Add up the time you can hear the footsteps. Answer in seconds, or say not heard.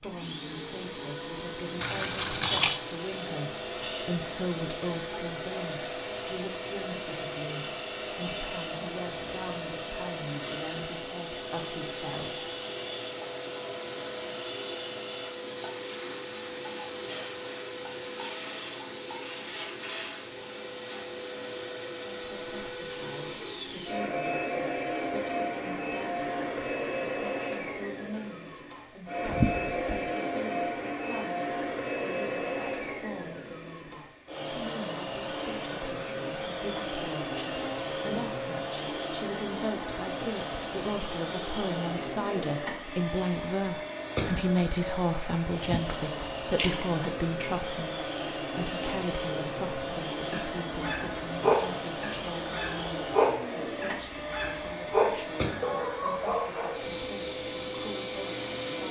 not heard.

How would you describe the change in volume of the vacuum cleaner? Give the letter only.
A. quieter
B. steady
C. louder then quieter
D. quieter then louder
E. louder
B.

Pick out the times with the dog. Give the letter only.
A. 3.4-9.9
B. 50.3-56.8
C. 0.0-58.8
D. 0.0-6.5
B.